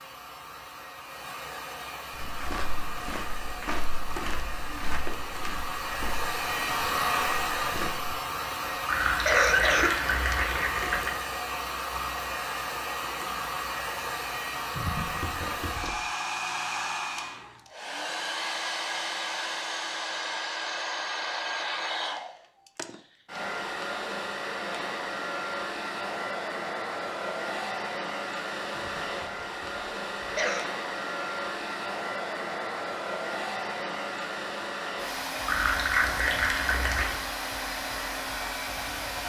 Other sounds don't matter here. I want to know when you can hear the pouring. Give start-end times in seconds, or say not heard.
8.8-11.2, 35.5-37.2.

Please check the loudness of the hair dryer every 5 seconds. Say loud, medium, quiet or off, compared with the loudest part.
medium, loud, loud, loud, loud, loud, loud, loud.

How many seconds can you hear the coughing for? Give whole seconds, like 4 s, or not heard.
5 s.